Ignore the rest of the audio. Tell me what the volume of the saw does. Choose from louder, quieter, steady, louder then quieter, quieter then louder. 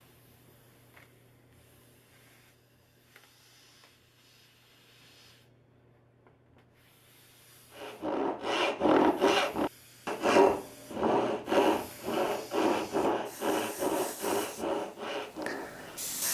quieter.